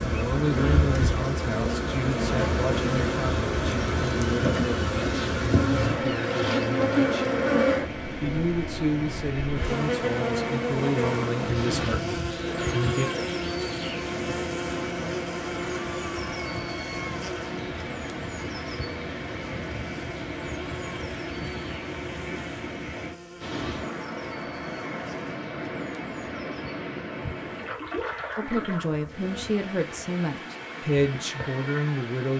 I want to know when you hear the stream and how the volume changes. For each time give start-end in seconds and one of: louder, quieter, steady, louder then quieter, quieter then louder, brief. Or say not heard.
5.9-32.3 steady.